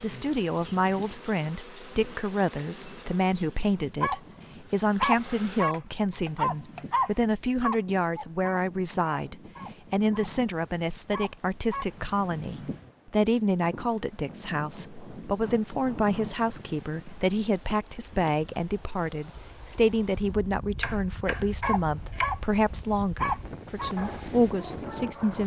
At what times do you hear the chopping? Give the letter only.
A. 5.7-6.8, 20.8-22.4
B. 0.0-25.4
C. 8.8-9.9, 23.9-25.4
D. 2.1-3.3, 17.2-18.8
A.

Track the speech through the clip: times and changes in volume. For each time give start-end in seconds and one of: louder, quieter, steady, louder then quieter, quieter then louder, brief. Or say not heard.
0.0-25.4 steady.